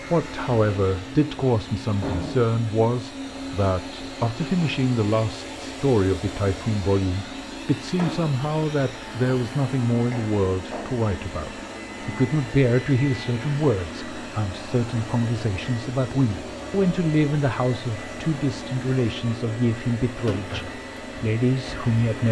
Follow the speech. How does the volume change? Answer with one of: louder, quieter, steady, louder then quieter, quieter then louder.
steady.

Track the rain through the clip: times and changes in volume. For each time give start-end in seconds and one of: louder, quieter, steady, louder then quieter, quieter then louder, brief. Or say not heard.
not heard.